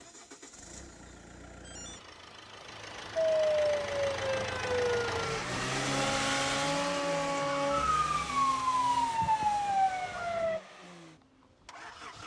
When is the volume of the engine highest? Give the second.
6 s.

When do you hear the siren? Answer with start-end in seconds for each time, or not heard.
3.1-10.6.